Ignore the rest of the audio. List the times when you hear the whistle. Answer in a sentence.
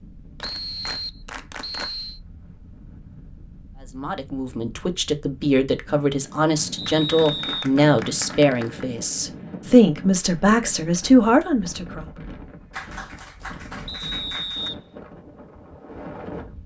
You can hear the whistle from 0.4 to 2.2 s, from 6.8 to 7.7 s and from 13.8 to 14.8 s.